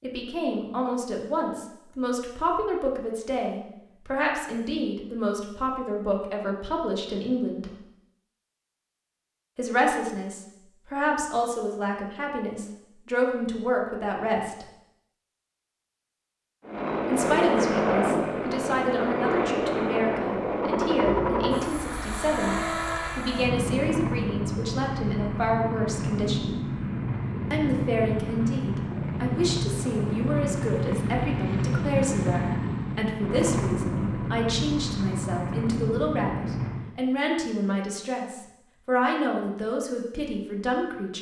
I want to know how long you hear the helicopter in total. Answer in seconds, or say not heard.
20 s.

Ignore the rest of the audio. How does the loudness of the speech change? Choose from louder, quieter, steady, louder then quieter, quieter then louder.
steady.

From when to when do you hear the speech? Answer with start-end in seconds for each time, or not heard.
0.0-7.8, 9.6-14.7, 17.1-26.7, 27.5-41.1.